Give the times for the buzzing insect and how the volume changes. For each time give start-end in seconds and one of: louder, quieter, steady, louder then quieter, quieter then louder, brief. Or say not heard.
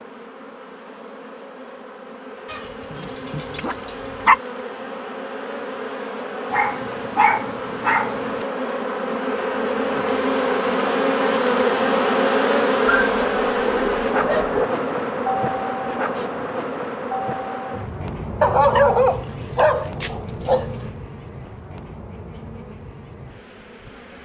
0.0-24.1 louder then quieter.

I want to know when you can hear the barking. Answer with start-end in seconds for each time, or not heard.
2.5-4.4, 6.5-8.4, 12.8-14.7, 18.4-20.9.